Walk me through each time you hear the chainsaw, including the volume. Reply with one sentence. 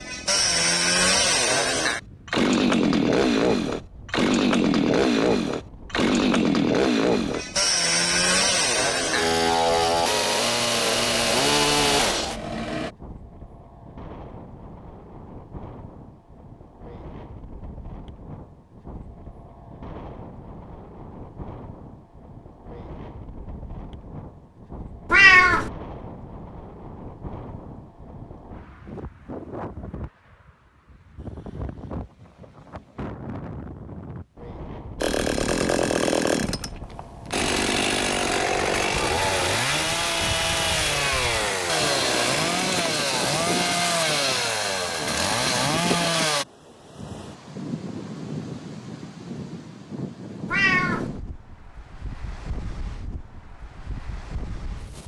The chainsaw can be heard from 0.0 to 12.9 s, at a steady volume; and from 35.0 to 46.5 s, at a steady volume.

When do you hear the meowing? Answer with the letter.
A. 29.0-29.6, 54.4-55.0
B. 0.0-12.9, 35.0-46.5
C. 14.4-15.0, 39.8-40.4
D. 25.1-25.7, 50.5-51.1
D.